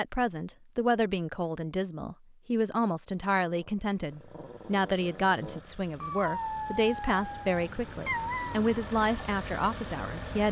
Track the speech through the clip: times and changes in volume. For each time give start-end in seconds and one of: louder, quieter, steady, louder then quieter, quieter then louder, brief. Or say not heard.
0.0-10.4 steady.